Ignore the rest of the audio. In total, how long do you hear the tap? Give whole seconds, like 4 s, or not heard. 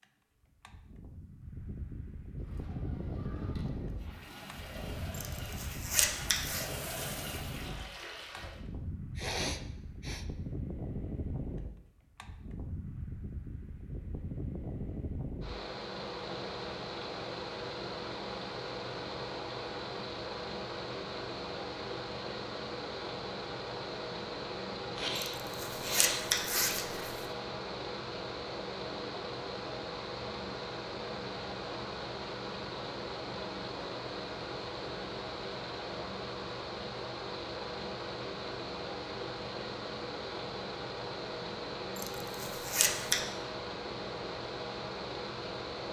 6 s.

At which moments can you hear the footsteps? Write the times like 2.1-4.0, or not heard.
not heard.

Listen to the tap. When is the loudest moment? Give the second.
7 s.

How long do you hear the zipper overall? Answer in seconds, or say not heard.
5 s.